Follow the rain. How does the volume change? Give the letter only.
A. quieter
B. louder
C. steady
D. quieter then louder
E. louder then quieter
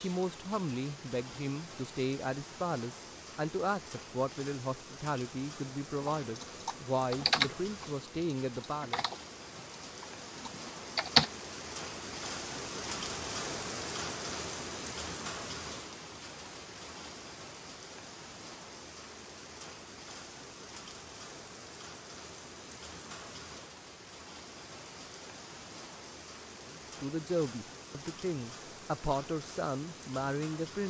E.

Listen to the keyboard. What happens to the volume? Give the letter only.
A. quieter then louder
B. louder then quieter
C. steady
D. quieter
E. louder
B.